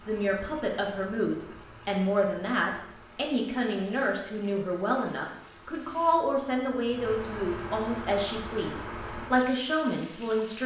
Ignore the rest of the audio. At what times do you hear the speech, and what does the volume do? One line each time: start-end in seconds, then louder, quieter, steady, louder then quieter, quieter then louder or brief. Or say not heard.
0.0-10.6 steady.